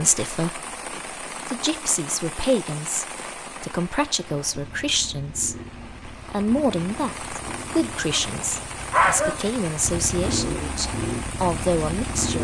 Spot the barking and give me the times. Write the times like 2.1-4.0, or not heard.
8.1-9.4.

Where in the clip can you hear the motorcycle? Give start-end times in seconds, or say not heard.
4.2-12.4.